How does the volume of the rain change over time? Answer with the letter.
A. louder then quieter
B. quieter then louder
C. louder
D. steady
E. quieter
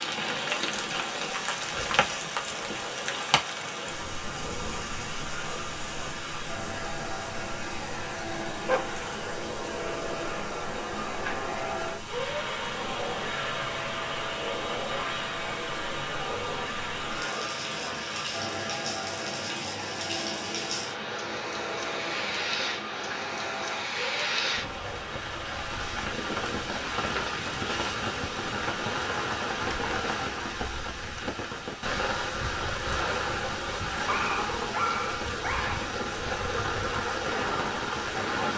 B.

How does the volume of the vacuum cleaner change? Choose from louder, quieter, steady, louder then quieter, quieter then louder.
louder then quieter.